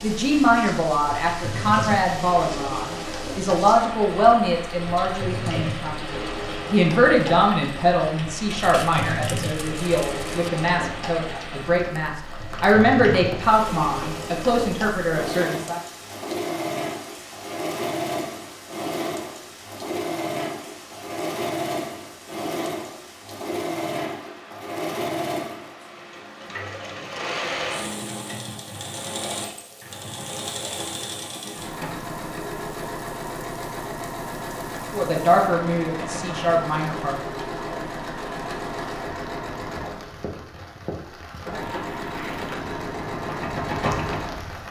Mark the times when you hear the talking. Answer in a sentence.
The talking can be heard from 0.0 to 15.8 s and from 34.9 to 37.2 s.